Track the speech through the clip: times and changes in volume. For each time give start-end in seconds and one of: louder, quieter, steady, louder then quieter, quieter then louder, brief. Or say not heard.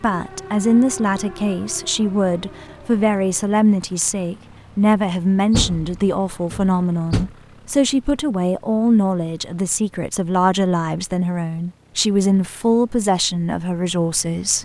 0.0-14.6 steady.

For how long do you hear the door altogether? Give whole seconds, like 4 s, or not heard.
2 s.